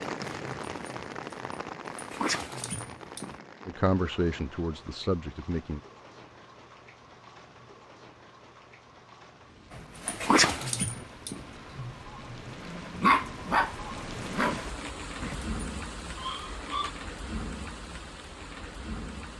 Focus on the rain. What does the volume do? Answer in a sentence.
The volume of the rain goes down, then up.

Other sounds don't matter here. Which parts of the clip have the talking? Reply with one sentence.
The talking can be heard from 3.6 to 5.8 s.